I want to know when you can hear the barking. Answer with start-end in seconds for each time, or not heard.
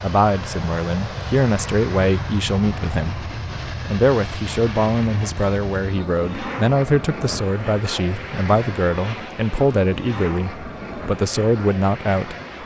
not heard.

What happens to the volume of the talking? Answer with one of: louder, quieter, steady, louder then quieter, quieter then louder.
steady.